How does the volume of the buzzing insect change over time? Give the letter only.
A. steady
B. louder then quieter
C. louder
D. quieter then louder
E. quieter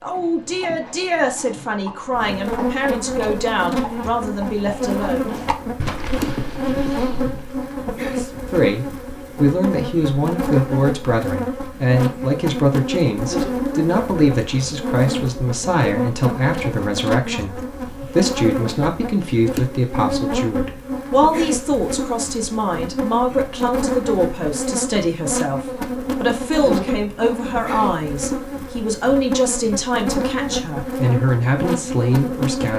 A.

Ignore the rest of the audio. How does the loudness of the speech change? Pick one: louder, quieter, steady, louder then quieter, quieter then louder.
steady.